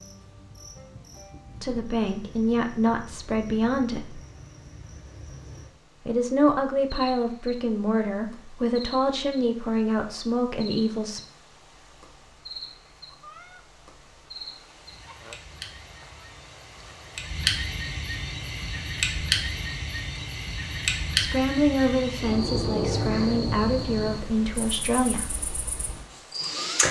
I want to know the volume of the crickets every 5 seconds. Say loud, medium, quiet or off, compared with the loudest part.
quiet, quiet, quiet, loud, loud, loud.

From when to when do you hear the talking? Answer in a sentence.
The talking can be heard from 1.6 to 4.2 s, from 6.0 to 11.2 s and from 21.1 to 25.4 s.